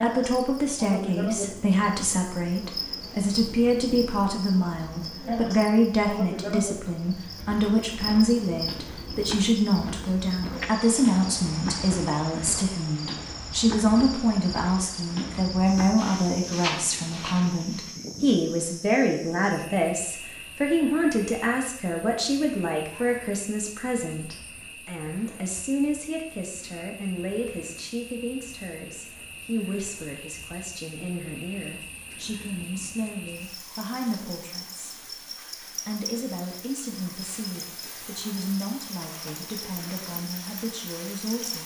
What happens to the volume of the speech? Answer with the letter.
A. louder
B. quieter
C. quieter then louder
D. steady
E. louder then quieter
B.